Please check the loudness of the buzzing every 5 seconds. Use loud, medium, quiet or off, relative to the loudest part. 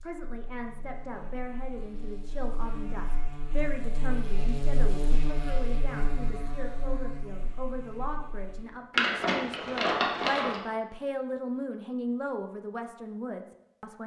loud, loud, off.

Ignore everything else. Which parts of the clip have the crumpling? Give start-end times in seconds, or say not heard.
8.9-10.6.